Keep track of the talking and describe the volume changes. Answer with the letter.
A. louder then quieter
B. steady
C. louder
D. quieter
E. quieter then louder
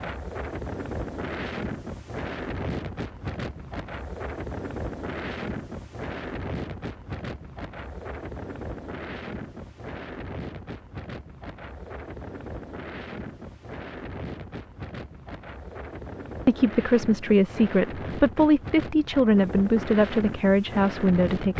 B.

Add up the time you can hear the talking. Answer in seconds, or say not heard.
5 s.